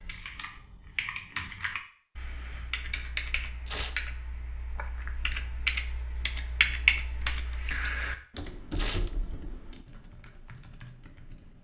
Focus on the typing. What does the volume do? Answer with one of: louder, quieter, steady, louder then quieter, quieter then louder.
louder then quieter.